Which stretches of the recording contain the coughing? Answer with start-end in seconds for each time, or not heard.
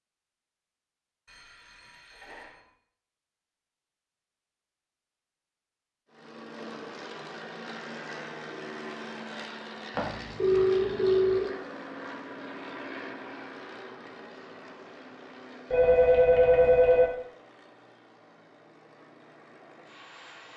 not heard.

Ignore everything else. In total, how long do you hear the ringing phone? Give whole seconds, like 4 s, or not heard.
4 s.